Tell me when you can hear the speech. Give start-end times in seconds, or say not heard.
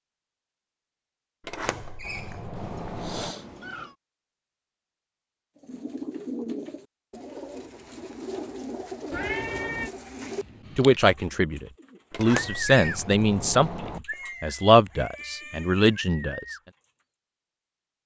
10.8-16.4.